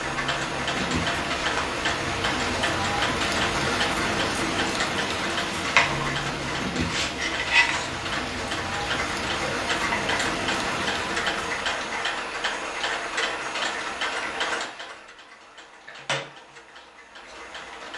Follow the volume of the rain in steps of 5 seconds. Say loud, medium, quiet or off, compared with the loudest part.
loud, loud, loud, off.